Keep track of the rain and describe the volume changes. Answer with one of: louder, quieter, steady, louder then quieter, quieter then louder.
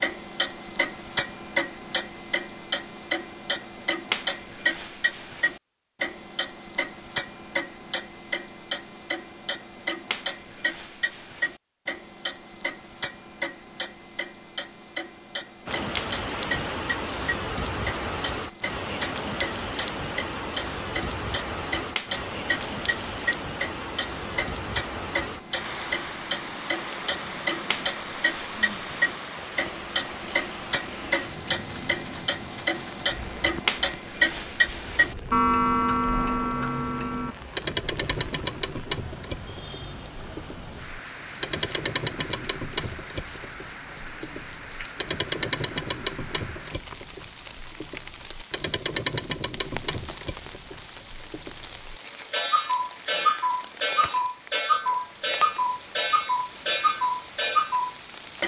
quieter.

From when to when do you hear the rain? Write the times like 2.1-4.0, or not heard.
15.7-58.4.